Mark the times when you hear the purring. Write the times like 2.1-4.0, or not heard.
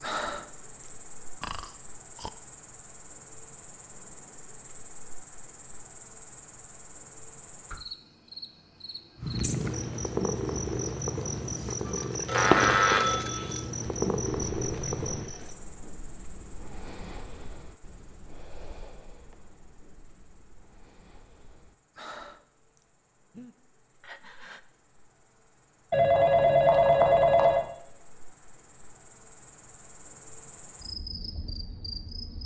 9.2-15.3.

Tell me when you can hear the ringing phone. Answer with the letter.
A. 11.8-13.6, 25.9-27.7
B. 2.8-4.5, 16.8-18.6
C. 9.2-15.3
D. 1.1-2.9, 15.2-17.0
A.